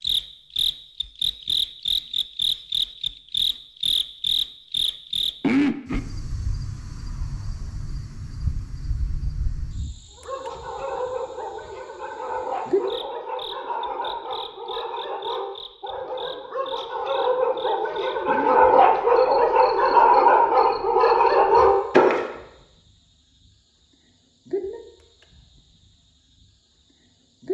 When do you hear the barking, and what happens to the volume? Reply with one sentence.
You can hear the barking from 10.2 to 22.2 s, getting louder.